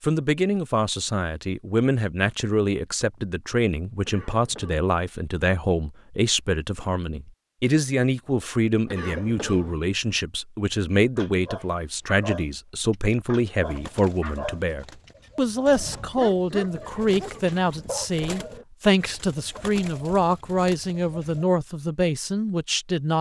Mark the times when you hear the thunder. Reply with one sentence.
You can't hear the thunder here.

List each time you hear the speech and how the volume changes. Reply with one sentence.
The speech can be heard from 0.0 to 23.1 s, at a steady volume.